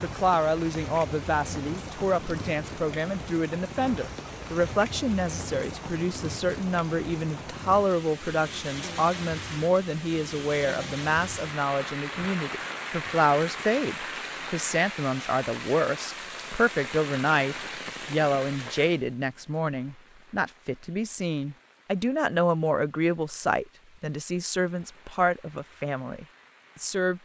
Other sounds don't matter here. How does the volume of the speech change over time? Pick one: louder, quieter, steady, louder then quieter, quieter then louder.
steady.